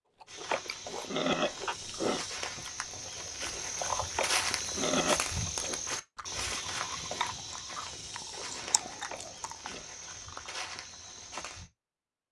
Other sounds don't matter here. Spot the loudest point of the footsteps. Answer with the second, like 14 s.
4 s.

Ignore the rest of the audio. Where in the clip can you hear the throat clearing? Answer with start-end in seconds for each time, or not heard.
0.5-2.2, 4.2-5.8, 9.1-9.8.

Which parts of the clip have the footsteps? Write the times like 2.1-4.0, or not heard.
0.2-11.7.